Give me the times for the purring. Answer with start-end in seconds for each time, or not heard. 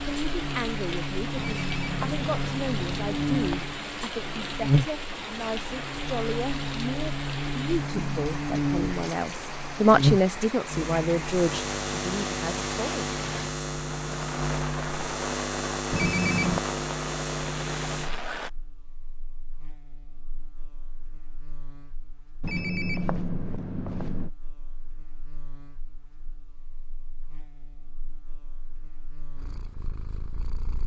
29.4-30.8.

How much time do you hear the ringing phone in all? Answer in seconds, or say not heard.
5 s.